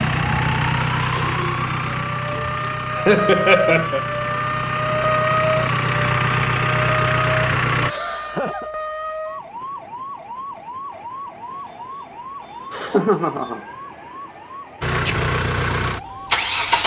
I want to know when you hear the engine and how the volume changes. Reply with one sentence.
The engine can be heard from 0.0 to 8.0 s, getting quieter then louder; and briefly from 14.8 to 16.8 s.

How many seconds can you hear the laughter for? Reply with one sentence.
You can hear the laughter for 3 seconds altogether.